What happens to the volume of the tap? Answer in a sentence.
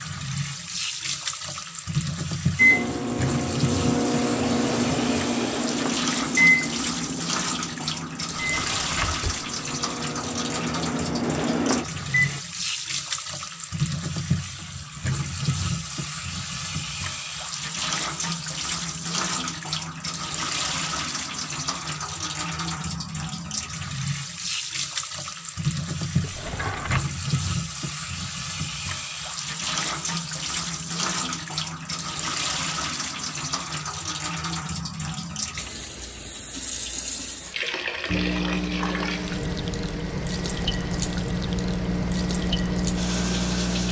The loudness of the tap stays about the same.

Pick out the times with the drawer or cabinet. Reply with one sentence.
The drawer or cabinet can be heard from 8.5 to 9.4 s and from 26.2 to 27.1 s.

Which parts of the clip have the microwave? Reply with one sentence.
The microwave can be heard from 2.5 to 12.4 s and from 38.0 to 43.8 s.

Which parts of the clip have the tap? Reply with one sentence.
You can hear the tap from 0.0 to 43.8 s.